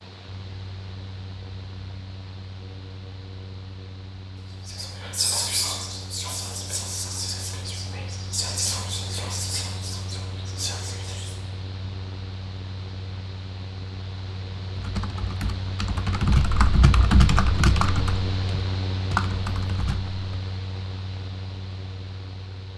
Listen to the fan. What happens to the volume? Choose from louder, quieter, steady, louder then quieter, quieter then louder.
louder.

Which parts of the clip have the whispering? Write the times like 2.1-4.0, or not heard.
4.7-11.3.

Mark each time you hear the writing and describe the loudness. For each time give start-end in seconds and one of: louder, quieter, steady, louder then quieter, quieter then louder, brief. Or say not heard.
not heard.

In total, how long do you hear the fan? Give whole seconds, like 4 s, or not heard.
23 s.